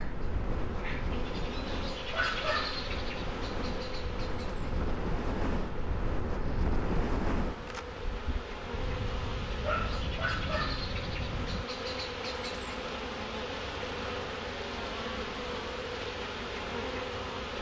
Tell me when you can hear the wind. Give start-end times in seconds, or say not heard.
0.0-11.7.